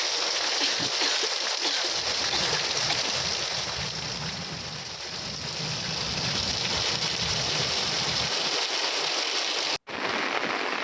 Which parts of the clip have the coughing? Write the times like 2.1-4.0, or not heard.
0.6-3.0.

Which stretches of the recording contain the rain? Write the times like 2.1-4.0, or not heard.
0.0-10.7.